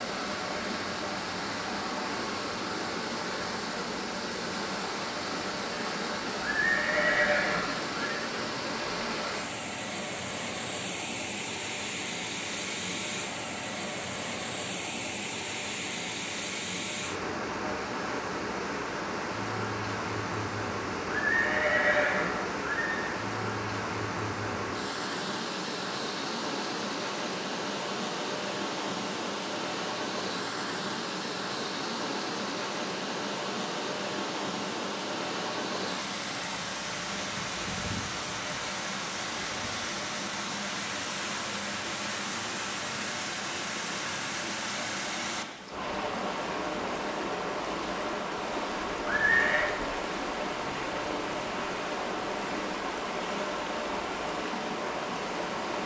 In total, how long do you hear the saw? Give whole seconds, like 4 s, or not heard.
not heard.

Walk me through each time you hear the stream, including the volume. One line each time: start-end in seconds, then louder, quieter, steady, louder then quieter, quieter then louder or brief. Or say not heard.
0.0-55.8 steady.